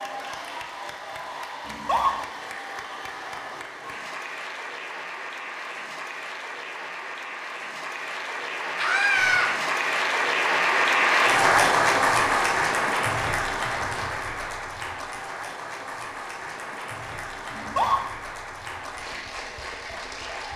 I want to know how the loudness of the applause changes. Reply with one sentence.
The loudness of the applause goes up, then down.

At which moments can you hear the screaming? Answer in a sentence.
The screaming can be heard from 1.6 to 2.1 s, from 8.8 to 9.5 s and from 17.5 to 18.0 s.